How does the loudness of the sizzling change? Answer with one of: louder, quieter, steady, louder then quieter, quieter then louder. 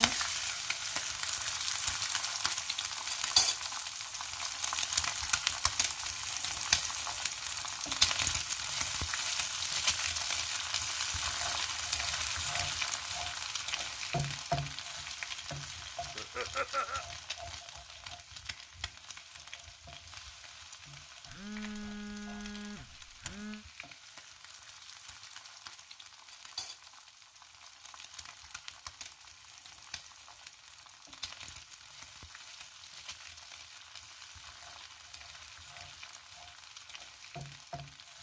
quieter.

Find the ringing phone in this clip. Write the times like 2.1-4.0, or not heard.
21.2-23.6.